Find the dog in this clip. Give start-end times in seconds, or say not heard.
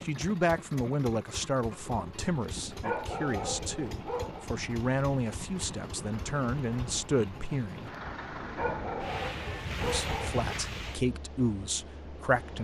2.8-4.5, 8.6-10.6.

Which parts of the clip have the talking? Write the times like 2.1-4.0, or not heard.
0.0-7.9, 9.8-12.6.